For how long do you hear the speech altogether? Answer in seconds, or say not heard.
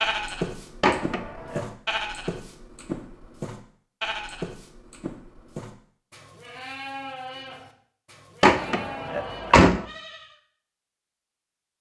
not heard.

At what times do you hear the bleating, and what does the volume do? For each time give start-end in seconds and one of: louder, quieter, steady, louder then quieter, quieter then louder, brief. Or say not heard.
0.0-10.4 quieter.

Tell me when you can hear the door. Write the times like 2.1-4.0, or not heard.
0.8-1.7, 8.4-9.8.